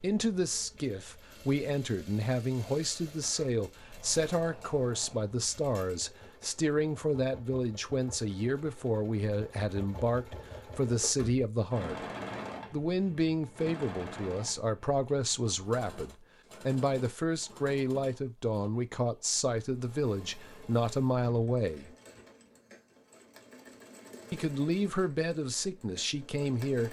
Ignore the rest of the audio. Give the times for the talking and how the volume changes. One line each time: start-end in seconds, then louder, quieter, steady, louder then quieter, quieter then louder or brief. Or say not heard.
0.0-12.0 steady
12.7-21.9 steady
24.3-26.8 brief.